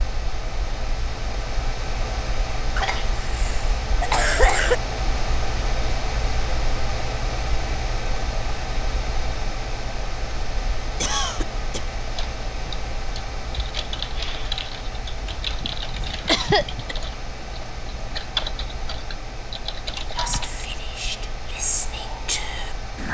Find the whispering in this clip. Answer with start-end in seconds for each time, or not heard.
20.1-23.1.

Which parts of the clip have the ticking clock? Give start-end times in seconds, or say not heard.
not heard.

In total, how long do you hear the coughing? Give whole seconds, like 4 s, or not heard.
4 s.